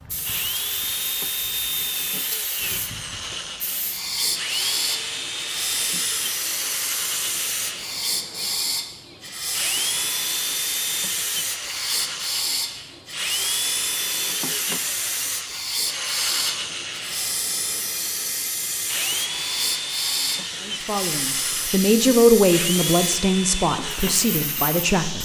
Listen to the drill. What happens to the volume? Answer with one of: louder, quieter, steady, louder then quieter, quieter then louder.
steady.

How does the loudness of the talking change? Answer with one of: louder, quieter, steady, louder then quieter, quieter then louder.
louder then quieter.